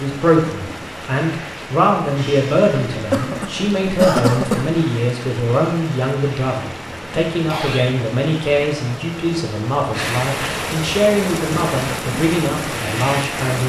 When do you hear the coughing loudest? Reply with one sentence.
The volume of the coughing peaks at 4 seconds.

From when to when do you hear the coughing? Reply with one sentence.
The coughing can be heard from 2.9 to 4.8 s and from 7.3 to 8.0 s.